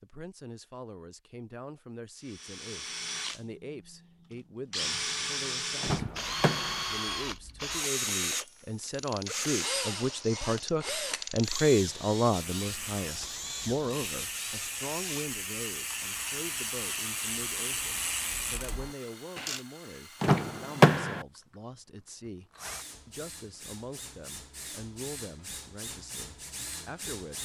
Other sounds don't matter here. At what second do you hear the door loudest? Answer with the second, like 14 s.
21 s.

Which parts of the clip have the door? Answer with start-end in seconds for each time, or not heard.
5.8-6.8, 20.2-21.2.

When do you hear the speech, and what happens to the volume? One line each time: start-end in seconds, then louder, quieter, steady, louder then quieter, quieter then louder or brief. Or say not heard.
0.0-27.4 louder then quieter.